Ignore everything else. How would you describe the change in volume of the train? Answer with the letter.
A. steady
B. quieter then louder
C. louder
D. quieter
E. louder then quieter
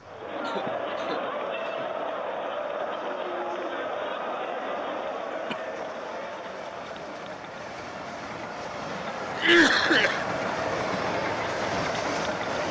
C.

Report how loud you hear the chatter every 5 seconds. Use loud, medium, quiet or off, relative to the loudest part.
loud, medium, loud.